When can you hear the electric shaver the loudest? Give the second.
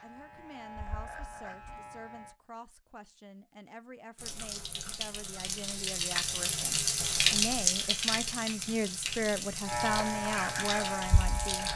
10 s.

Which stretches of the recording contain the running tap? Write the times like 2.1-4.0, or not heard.
4.2-11.7.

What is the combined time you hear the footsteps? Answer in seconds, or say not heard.
not heard.